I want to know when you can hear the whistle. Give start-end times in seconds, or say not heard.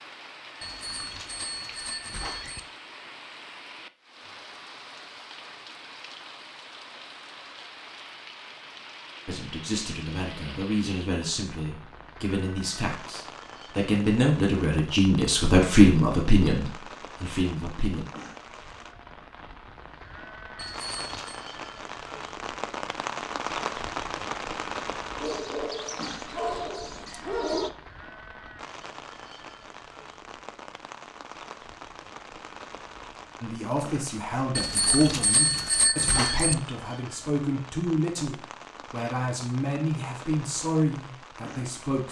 not heard.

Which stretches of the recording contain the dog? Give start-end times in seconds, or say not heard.
25.2-27.7.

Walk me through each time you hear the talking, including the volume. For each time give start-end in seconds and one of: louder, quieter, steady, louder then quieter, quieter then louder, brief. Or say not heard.
9.2-18.1 louder then quieter
33.4-42.0 steady.